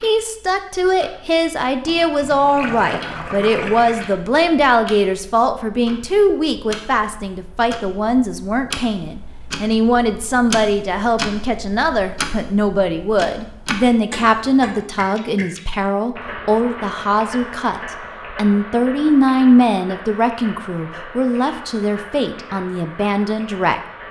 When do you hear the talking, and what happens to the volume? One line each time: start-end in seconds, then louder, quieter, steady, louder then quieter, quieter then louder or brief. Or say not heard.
0.0-23.8 steady.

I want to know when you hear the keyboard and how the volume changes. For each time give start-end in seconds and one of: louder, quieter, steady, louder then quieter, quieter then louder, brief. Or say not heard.
not heard.